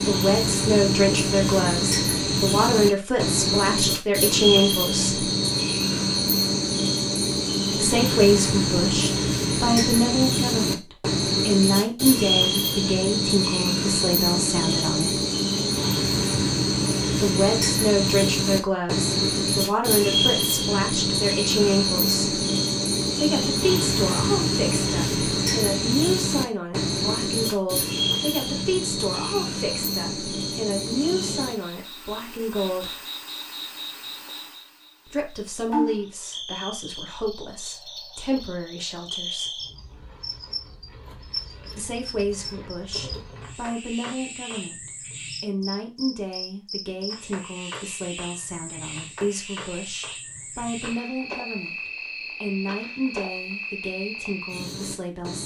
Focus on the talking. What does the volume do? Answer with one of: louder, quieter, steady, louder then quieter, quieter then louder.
quieter.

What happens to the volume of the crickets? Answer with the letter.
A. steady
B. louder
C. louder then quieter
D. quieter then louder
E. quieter
E.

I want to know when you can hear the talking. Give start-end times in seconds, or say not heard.
0.1-5.2, 7.7-15.2, 17.2-22.4, 23.1-33.0, 35.0-39.5, 41.8-55.4.